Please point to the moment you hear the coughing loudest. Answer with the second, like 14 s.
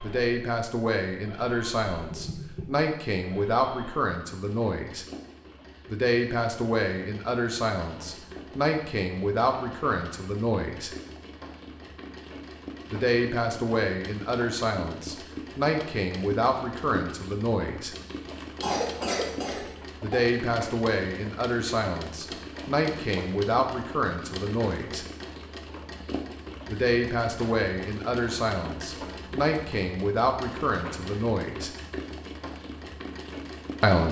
19 s.